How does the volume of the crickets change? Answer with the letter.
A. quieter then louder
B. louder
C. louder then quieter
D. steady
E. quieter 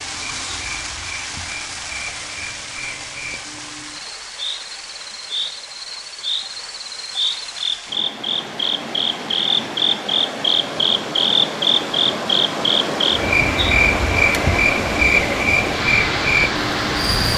B.